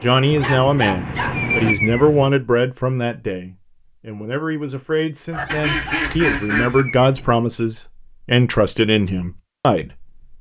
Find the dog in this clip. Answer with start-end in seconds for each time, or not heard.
0.3-2.3, 5.3-7.3.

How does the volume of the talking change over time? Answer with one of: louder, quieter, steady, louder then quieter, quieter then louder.
quieter then louder.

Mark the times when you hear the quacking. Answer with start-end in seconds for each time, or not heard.
5.3-6.8.